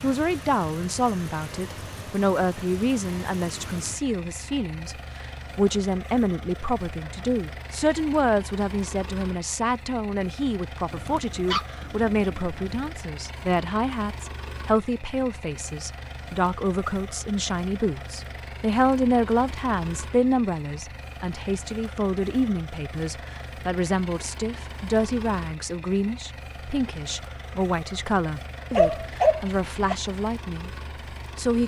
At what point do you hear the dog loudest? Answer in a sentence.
The loudest moment of the dog is at 29 seconds.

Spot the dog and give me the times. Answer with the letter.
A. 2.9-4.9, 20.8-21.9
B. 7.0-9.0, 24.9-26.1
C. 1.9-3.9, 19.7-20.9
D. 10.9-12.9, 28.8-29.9
D.